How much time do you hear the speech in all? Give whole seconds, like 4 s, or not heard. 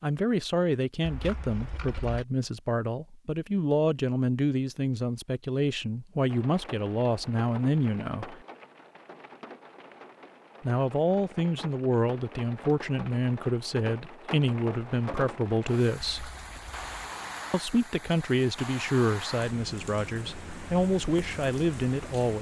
19 s.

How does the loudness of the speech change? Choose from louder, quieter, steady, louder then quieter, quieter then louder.
steady.